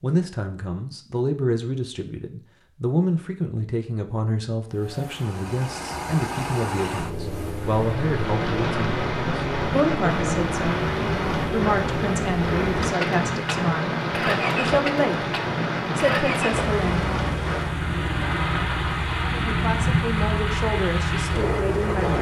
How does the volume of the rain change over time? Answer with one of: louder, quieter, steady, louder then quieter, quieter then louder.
steady.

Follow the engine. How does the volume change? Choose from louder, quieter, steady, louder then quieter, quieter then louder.
steady.